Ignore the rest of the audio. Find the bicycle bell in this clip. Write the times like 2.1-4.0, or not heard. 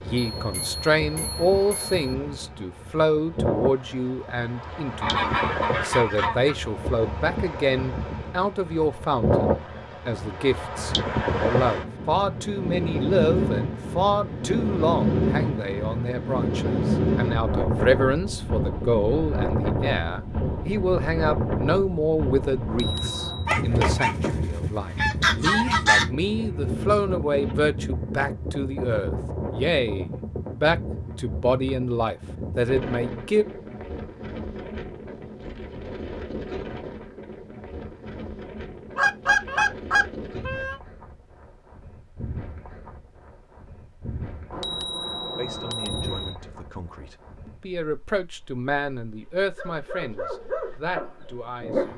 0.3-1.9, 22.6-23.5, 44.5-46.4.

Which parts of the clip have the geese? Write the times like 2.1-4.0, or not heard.
5.0-6.5, 23.4-26.1, 39.0-40.8.